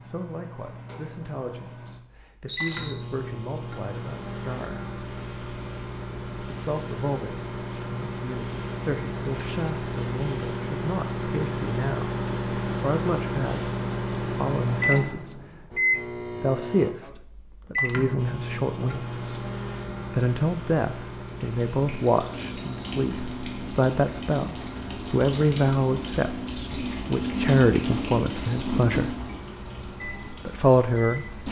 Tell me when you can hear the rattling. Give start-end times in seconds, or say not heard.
2.5-2.9, 22.6-23.0.